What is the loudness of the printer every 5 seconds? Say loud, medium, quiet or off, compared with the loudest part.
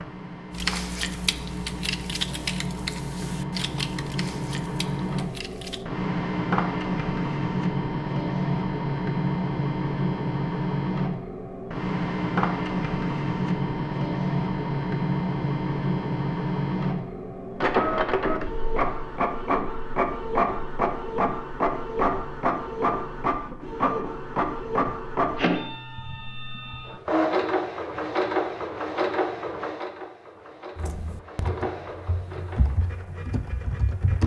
medium, loud, loud, loud, loud, loud, quiet.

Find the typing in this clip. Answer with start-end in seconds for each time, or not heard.
0.5-5.8, 30.8-34.2.